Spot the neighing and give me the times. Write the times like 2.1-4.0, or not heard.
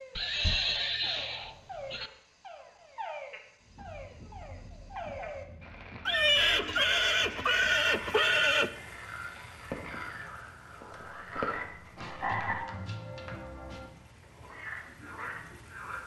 0.1-2.1, 6.0-8.7, 11.2-12.7.